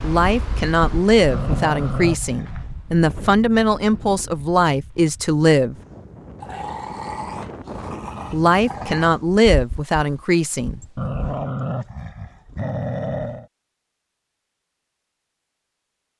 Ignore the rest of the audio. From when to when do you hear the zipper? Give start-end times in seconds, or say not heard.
not heard.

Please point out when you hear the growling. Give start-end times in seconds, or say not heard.
1.3-2.7, 6.4-9.1, 10.9-13.4.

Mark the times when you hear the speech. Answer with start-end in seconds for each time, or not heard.
0.0-5.8, 8.3-10.8.